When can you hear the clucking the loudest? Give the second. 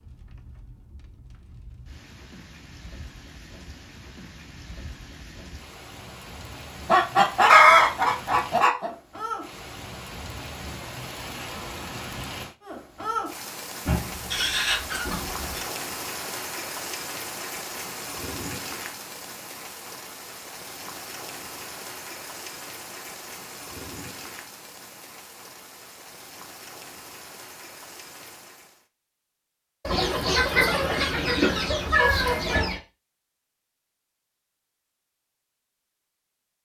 8 s.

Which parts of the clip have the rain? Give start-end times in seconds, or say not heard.
0.0-28.9.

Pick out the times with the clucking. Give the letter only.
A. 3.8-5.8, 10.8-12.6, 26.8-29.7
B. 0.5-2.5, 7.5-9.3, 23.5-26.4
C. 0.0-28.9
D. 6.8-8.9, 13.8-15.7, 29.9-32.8
D.